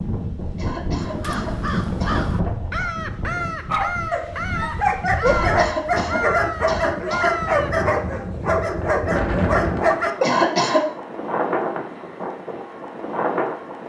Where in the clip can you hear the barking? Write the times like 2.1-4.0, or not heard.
3.6-10.3.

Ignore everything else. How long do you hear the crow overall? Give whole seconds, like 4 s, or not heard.
7 s.